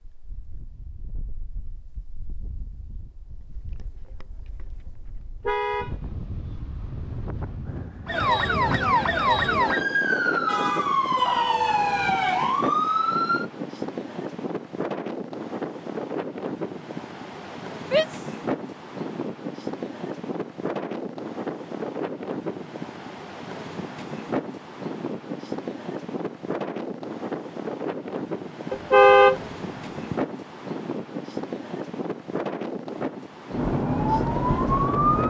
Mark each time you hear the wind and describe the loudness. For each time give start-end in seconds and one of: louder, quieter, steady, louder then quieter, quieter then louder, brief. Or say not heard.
0.0-35.2 louder.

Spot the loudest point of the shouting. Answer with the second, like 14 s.
18 s.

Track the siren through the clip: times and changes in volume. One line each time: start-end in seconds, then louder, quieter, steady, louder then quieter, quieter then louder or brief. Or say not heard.
8.1-13.4 steady
33.5-35.2 brief.